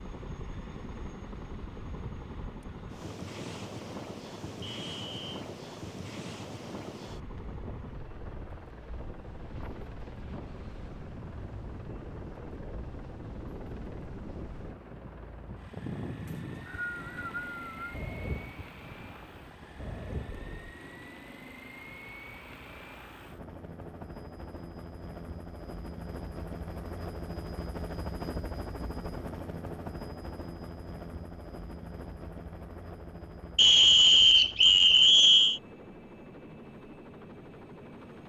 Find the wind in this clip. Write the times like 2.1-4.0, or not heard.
0.0-20.8.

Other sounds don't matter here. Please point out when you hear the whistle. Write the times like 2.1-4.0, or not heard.
4.6-5.4, 16.2-17.9, 33.5-35.6.